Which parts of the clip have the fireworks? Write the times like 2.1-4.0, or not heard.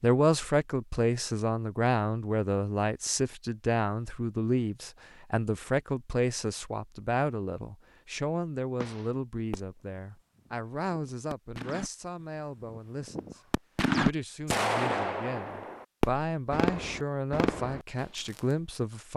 8.8-18.4.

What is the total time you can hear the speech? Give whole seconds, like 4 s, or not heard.
19 s.